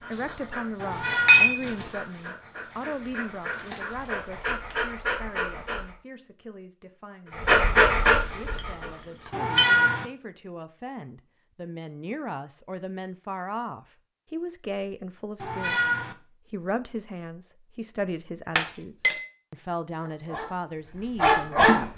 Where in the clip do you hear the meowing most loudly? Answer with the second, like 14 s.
10 s.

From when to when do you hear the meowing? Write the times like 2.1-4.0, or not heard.
0.8-1.6, 9.3-10.1, 15.4-16.1.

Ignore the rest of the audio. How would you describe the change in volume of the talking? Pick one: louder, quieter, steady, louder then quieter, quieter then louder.
quieter then louder.